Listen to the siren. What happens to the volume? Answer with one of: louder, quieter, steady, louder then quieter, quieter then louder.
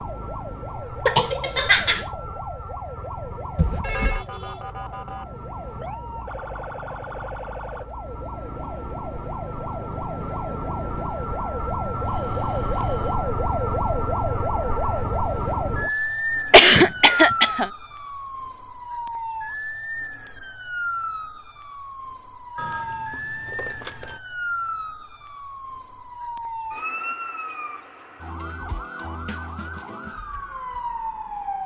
louder then quieter.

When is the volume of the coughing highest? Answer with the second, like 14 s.
17 s.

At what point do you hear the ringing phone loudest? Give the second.
4 s.